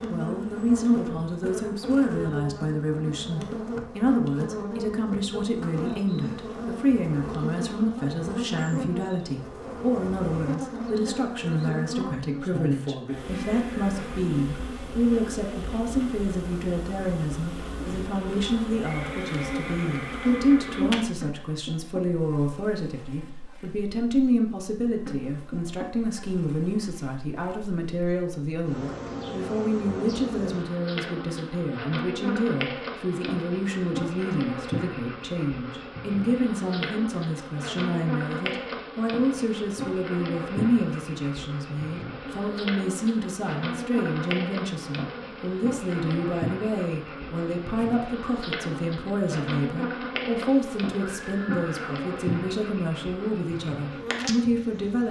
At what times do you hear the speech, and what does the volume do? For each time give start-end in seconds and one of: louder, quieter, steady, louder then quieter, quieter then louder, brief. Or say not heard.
0.0-55.0 steady.